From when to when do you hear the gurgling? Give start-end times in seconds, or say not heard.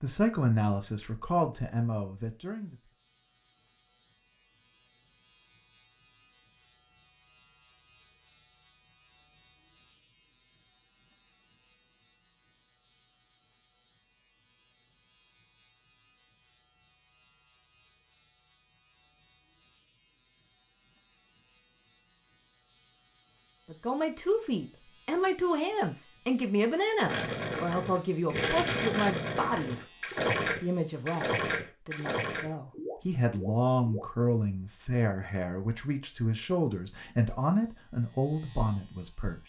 27.0-34.0.